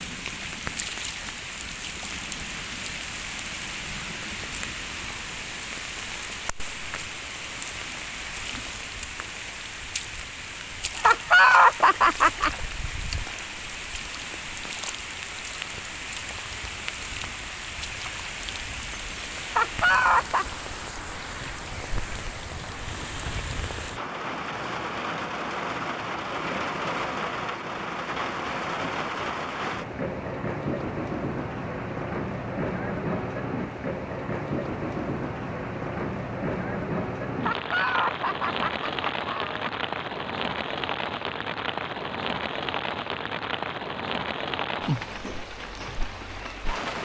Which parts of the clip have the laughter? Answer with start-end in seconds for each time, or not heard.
10.9-12.5, 19.5-20.4, 37.4-39.7.